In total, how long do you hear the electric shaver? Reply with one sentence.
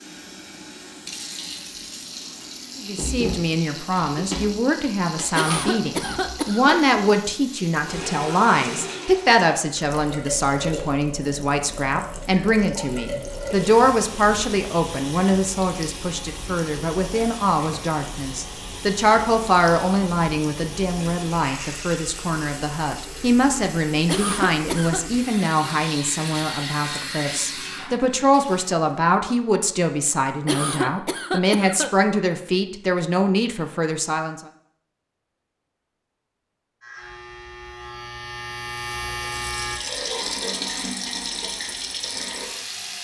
You can hear the electric shaver for 3 seconds altogether.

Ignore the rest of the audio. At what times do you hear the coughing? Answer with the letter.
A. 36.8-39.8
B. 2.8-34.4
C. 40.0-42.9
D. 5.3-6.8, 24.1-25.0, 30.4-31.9
D.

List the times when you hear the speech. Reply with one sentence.
You can hear the speech from 2.8 to 34.4 s.